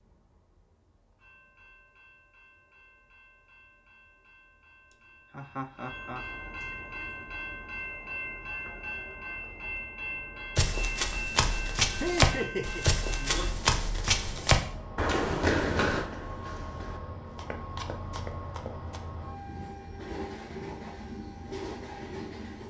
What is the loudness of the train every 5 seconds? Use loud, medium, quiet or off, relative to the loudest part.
quiet, loud, loud, loud, loud.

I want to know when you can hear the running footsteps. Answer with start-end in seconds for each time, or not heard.
10.6-19.0.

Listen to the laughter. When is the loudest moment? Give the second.
12 s.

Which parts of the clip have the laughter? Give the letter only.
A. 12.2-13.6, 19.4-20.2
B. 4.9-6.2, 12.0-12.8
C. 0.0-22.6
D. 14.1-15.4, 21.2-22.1
B.